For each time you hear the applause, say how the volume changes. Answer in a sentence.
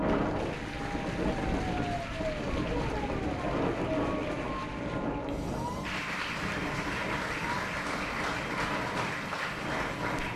You can hear the applause from 0.0 to 10.3 s, getting louder.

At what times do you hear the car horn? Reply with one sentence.
The car horn can't be heard in this clip.